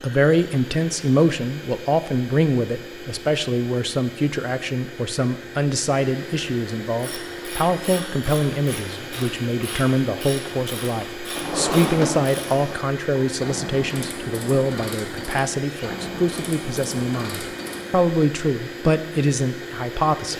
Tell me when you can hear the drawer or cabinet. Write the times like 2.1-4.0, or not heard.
11.3-12.8.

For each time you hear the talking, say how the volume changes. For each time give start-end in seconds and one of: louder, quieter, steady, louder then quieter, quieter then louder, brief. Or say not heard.
0.0-20.3 steady.